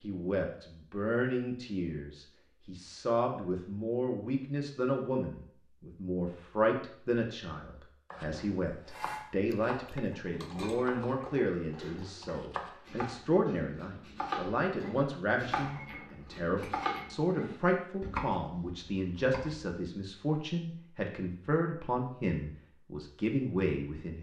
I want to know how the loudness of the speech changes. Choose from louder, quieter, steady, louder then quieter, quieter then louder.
steady.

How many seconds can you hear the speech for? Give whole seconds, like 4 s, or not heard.
24 s.